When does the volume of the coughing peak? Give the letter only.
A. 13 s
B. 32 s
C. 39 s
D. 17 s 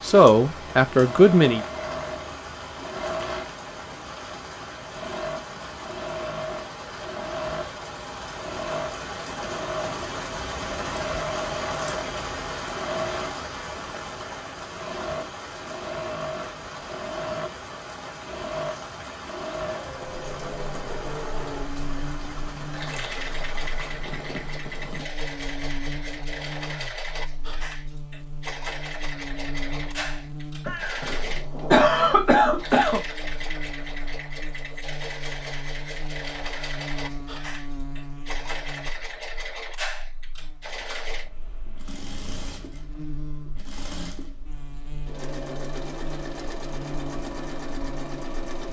B.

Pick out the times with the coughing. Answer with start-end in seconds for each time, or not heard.
30.6-33.0.